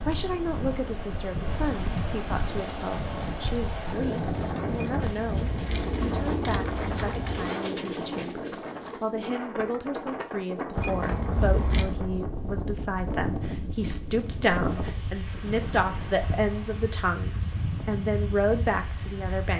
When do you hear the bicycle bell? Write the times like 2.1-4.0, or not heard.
not heard.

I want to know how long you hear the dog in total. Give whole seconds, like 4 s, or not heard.
not heard.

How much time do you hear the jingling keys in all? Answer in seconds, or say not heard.
4 s.